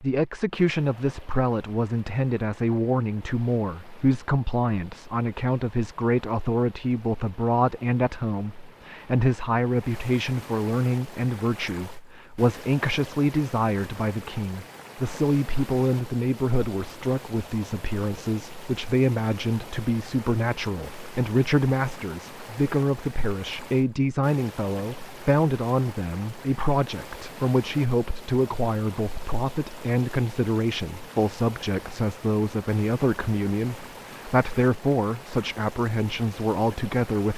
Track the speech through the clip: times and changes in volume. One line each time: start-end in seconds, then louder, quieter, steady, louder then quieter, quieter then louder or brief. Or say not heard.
0.0-37.3 steady.